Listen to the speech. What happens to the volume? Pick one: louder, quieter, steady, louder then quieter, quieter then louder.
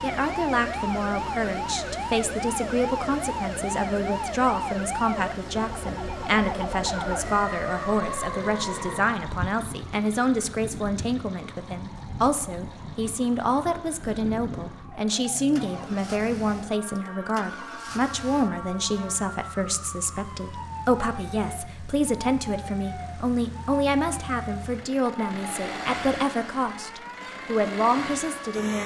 steady.